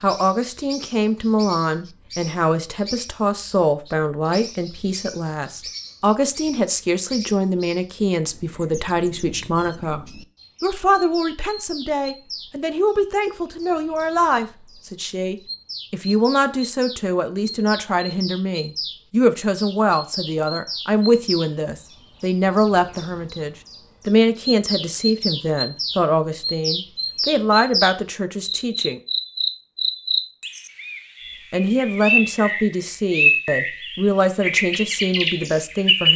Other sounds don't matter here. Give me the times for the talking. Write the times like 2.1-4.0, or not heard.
0.0-29.0, 31.5-36.1.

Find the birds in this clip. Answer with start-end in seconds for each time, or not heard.
0.0-36.1.